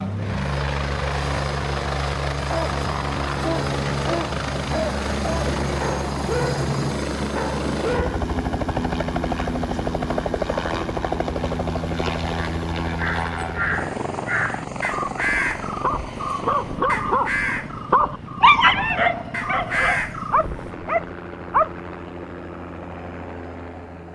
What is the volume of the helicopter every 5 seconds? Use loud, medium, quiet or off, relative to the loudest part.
loud, loud, loud, medium, medium.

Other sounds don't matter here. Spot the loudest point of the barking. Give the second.
19 s.